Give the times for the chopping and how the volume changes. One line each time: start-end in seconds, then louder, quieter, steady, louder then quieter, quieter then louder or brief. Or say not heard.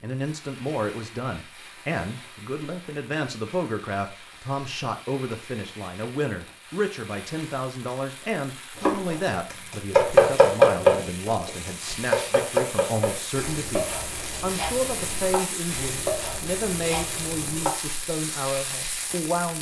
8.8-18.1 quieter.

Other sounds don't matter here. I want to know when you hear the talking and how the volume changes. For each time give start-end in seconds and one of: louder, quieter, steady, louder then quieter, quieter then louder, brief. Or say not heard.
0.0-19.5 steady.